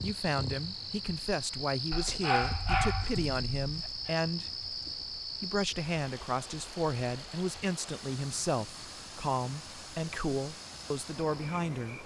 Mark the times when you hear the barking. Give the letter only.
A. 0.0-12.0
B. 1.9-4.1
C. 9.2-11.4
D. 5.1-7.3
B.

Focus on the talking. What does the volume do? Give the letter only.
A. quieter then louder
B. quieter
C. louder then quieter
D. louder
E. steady
E.